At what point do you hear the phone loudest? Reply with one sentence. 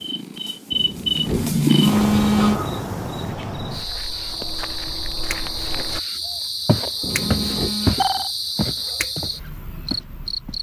The loudest moment of the phone is at 2 seconds.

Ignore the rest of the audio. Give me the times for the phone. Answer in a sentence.
You can hear the phone from 1.8 to 2.6 s and from 7.1 to 8.3 s.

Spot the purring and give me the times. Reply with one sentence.
You can hear the purring from 0.0 to 3.3 s.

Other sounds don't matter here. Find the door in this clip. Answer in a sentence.
You can hear the door from 0.7 to 1.6 s and from 7.0 to 7.8 s.